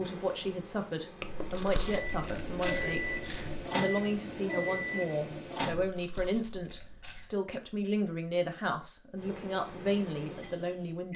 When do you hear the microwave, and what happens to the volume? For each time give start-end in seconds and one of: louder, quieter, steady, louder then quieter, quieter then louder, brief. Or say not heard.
0.0-5.8 louder
9.2-11.1 brief.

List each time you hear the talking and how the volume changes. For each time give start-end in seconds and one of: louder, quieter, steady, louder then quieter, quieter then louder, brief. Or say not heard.
0.0-11.1 steady.